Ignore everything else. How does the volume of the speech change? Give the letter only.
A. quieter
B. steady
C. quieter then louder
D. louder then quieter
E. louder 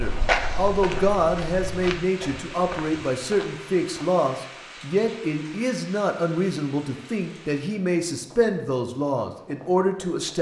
B.